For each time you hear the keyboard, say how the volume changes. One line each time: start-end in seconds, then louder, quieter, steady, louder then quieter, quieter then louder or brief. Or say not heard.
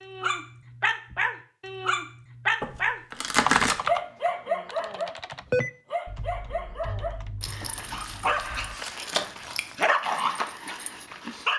3.4-8.8 quieter.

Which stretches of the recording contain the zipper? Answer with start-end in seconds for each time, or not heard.
not heard.